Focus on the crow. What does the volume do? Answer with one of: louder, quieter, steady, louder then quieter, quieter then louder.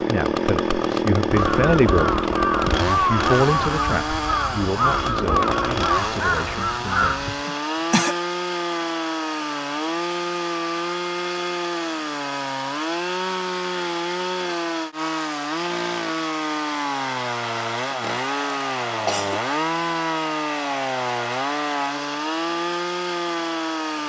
steady.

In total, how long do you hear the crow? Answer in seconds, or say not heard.
6 s.